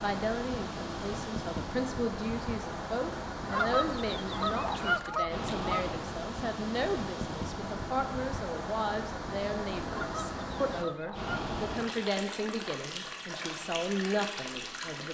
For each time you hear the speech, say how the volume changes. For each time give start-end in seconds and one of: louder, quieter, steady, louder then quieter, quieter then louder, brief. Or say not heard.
0.0-15.0 steady.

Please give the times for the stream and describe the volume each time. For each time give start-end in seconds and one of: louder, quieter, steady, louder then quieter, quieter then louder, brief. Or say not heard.
0.0-15.0 steady.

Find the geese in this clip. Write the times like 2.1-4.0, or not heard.
3.5-5.9, 9.9-11.6.